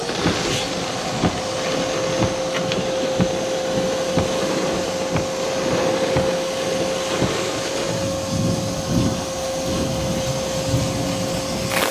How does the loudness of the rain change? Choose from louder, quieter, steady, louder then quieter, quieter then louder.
steady.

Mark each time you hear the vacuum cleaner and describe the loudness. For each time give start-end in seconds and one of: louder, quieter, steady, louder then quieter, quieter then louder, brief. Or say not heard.
0.0-11.8 steady.